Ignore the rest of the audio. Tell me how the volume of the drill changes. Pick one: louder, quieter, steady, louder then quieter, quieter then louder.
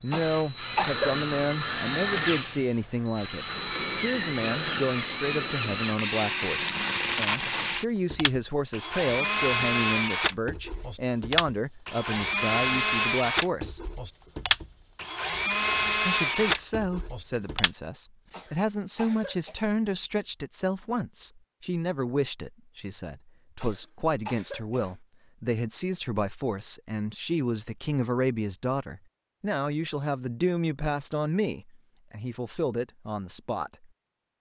steady.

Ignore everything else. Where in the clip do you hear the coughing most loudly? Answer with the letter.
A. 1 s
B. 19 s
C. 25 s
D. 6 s
A.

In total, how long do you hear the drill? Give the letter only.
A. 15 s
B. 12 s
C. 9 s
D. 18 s
D.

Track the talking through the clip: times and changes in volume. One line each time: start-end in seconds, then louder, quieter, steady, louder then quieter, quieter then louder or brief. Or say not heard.
0.0-13.9 steady
16.1-33.9 steady.